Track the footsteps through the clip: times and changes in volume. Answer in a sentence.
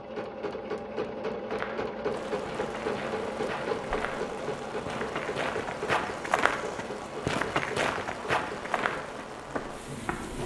The footsteps can be heard from 1.4 to 10.4 s, getting louder then quieter.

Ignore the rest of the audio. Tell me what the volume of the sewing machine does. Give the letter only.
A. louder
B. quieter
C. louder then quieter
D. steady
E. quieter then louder
B.